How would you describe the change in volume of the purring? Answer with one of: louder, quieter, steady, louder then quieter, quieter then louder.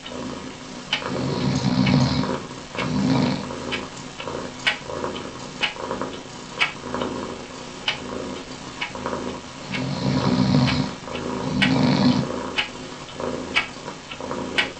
steady.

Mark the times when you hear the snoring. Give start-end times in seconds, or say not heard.
1.0-3.5, 9.7-12.2.